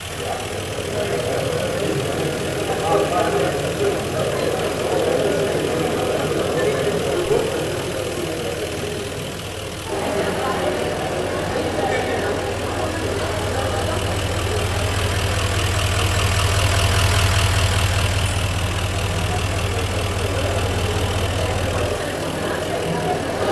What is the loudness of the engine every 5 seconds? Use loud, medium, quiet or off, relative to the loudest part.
medium, medium, medium, loud, medium.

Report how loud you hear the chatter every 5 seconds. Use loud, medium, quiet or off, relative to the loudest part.
loud, loud, loud, medium, loud.